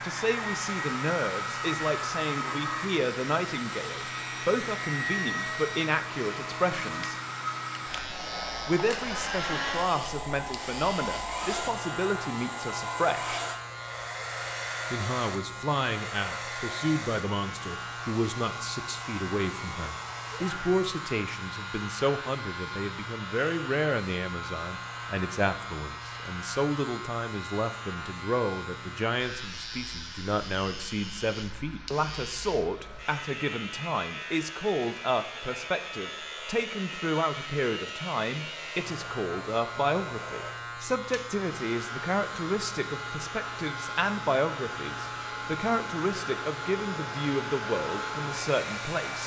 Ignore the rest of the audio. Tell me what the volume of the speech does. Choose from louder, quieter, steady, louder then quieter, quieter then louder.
steady.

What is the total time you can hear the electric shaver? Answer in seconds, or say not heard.
49 s.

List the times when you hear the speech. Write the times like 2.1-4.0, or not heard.
0.0-7.2, 8.7-13.4, 14.9-49.2.